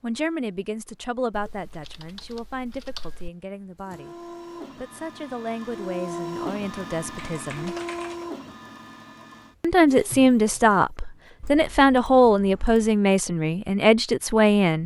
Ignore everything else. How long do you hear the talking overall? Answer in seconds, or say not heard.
13 s.